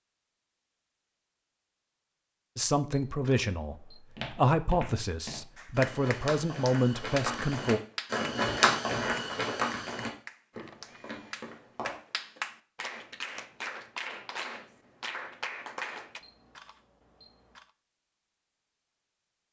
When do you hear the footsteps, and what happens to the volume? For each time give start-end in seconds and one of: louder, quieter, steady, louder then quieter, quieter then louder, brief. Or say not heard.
4.0-12.0 louder then quieter.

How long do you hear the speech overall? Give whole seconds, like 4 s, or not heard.
5 s.